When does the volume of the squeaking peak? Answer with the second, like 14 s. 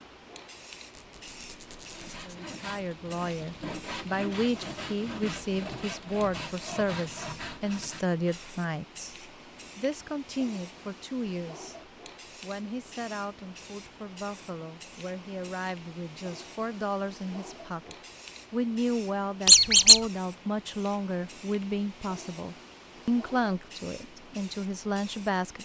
20 s.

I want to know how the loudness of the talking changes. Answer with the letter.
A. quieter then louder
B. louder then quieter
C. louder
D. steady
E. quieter
A.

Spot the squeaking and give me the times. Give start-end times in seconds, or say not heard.
0.9-2.4, 19.4-20.0.